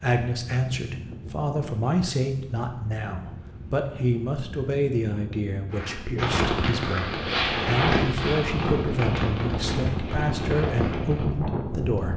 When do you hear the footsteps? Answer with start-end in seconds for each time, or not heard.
not heard.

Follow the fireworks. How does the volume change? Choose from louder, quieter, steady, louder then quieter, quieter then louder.
quieter.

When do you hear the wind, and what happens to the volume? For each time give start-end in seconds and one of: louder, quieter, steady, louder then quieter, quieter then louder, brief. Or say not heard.
0.2-12.1 louder.